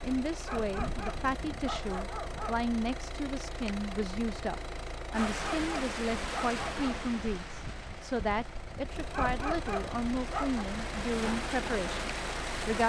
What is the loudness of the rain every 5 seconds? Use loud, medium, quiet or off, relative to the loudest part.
off, loud, loud.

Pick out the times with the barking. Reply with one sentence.
The barking can be heard from 0.5 to 2.7 s, from 5.2 to 7.0 s and from 9.1 to 10.7 s.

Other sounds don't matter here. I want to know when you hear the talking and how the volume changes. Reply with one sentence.
The talking can be heard from 0.0 to 12.8 s, at a steady volume.